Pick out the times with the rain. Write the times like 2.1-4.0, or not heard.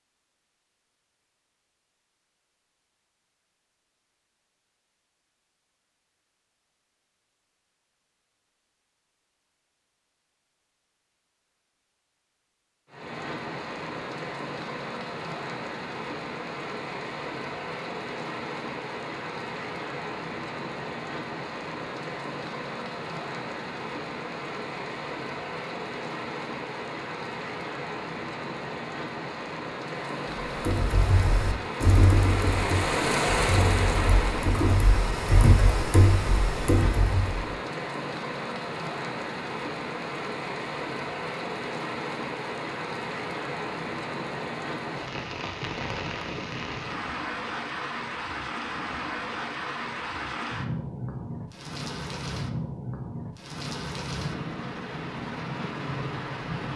12.8-56.7.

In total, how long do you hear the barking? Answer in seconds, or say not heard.
not heard.